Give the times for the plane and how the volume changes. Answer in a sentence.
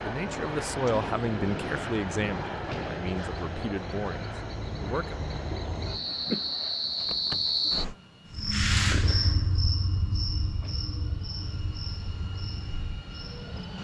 The plane can be heard from 0.0 to 13.7 s, getting quieter then louder.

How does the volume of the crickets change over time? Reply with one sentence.
The volume of the crickets goes up, then down.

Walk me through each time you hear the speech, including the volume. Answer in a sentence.
The speech can be heard from 0.0 to 5.2 s, getting quieter.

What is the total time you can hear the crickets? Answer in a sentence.
The crickets can be heard for 14 seconds in total.